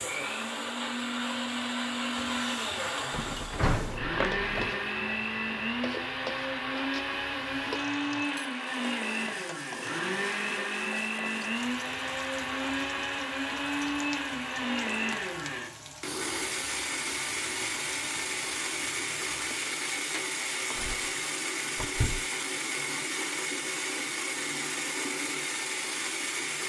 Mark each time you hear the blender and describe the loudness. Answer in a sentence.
The blender can be heard from 0.0 to 26.6 s, at a steady volume.